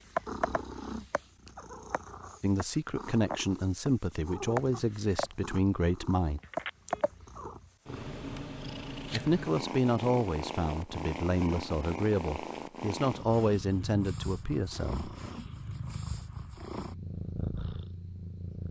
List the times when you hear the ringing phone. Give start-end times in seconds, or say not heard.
6.5-7.0.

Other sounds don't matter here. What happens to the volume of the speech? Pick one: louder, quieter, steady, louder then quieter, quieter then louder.
steady.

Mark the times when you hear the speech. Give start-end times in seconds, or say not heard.
2.4-6.4, 9.1-15.1.